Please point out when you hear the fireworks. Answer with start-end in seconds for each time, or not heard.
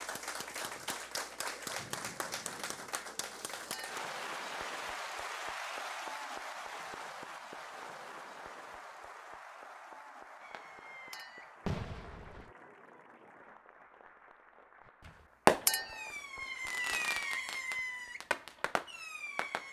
10.4-12.5, 15.1-19.6.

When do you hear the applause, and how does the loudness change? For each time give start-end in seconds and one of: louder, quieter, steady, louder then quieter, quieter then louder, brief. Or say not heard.
0.0-19.6 quieter.